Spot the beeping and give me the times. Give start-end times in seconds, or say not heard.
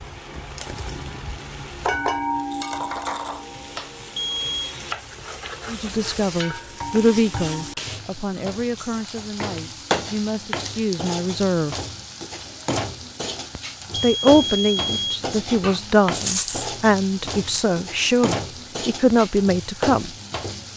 4.2-4.8, 13.9-15.2.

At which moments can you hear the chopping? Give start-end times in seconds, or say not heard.
not heard.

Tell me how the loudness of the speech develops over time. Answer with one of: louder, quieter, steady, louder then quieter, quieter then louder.
quieter then louder.